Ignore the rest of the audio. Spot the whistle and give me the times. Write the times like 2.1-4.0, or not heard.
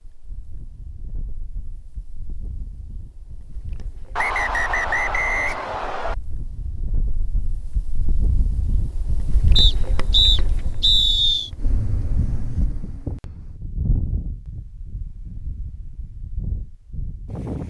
4.2-6.2, 9.6-11.5.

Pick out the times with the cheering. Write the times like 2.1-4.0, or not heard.
not heard.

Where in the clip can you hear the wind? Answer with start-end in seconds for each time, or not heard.
0.0-17.6.